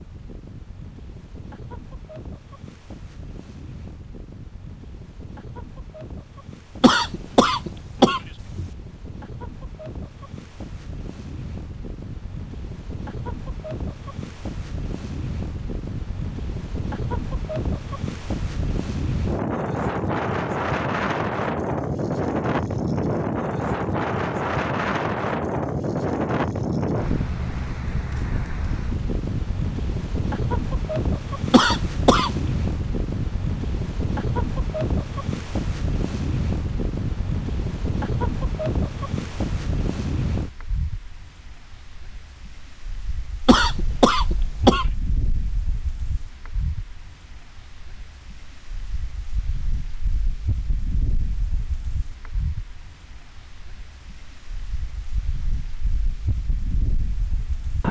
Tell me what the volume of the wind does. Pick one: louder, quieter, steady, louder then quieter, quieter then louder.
louder then quieter.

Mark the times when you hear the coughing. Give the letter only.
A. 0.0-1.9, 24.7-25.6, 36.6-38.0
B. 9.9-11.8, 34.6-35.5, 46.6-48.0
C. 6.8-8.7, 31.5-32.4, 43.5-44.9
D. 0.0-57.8
C.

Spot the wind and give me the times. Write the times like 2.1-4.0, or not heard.
0.0-57.8.